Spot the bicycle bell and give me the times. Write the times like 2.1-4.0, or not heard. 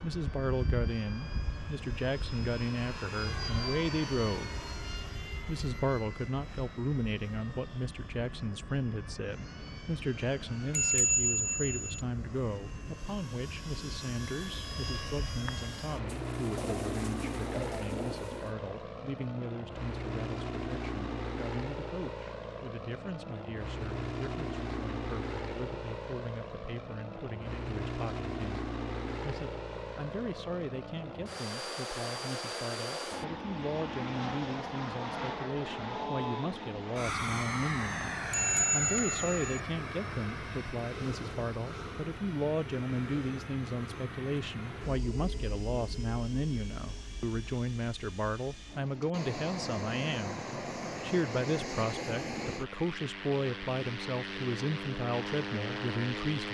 10.7-12.1, 38.3-39.4.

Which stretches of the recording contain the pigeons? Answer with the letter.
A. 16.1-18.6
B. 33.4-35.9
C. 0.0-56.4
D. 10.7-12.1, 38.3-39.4
A.